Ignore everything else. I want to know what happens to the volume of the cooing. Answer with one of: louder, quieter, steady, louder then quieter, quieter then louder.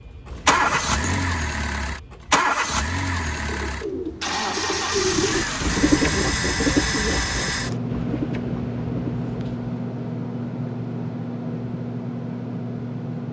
louder then quieter.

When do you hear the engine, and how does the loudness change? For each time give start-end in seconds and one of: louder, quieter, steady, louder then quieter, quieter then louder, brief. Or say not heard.
0.0-13.2 quieter.